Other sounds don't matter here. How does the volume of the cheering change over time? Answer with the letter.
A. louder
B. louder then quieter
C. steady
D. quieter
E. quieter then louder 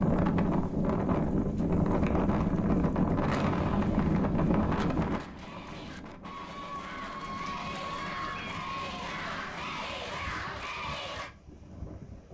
A.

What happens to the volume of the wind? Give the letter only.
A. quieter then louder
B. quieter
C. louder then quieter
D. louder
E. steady
B.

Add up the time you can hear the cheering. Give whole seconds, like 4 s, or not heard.
8 s.